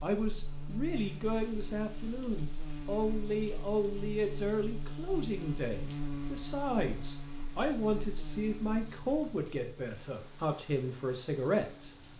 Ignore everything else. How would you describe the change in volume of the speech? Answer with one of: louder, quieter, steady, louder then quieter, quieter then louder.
steady.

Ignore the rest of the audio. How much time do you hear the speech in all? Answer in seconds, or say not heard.
12 s.